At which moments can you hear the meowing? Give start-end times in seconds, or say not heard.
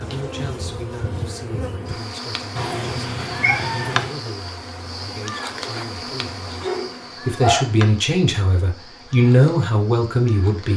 2.5-4.2.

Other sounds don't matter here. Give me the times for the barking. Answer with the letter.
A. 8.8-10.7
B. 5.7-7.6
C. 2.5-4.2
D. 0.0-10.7
B.